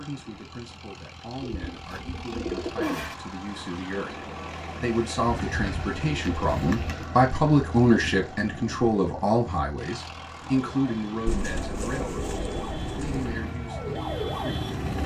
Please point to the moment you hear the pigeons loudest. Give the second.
3 s.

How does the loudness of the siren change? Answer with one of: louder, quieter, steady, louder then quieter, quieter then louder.
louder.